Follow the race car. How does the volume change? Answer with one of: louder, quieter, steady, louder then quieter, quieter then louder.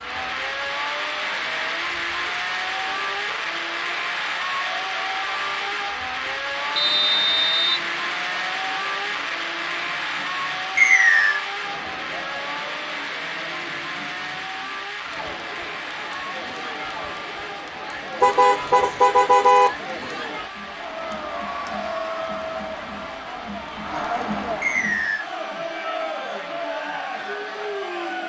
quieter.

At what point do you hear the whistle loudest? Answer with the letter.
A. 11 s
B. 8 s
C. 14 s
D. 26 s
A.